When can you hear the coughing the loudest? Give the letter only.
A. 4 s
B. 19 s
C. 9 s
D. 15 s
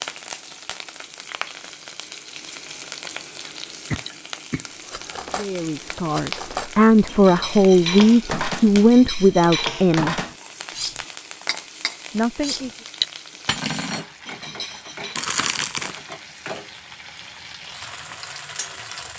A.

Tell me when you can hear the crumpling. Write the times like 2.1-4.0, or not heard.
15.2-16.0.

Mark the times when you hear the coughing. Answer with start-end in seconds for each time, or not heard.
3.5-5.2.